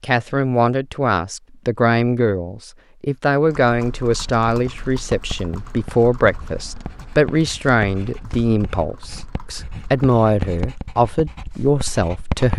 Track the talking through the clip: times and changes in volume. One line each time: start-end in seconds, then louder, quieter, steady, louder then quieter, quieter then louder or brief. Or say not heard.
0.0-12.5 steady.